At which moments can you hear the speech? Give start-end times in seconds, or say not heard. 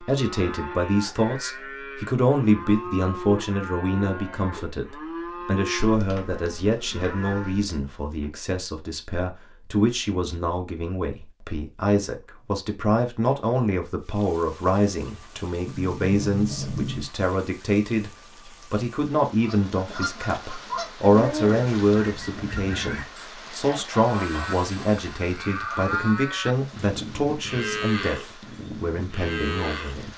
0.0-30.1.